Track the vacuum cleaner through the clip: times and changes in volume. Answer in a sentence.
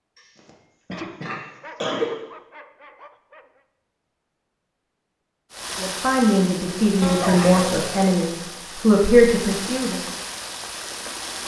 The vacuum cleaner can't be heard in this clip.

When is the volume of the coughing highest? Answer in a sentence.
The volume of the coughing peaks at 2 seconds.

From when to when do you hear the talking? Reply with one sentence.
The talking can be heard from 5.8 to 10.1 s.